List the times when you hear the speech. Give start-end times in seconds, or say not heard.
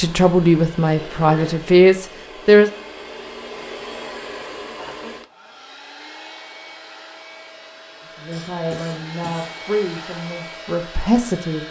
0.0-2.7, 8.1-11.6.